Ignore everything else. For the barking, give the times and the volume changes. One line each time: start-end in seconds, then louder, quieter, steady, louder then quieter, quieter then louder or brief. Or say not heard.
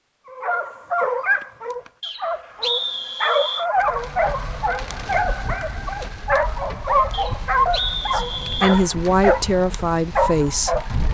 0.2-11.1 steady.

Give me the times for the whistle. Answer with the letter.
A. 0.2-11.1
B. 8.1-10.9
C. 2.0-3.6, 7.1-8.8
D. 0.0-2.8
C.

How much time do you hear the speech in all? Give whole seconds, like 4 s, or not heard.
3 s.